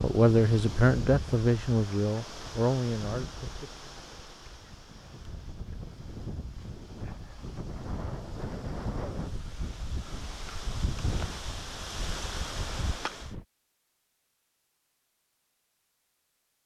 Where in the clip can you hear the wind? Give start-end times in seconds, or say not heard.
0.0-13.4.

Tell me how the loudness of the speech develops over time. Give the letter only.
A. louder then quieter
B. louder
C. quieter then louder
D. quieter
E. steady
D.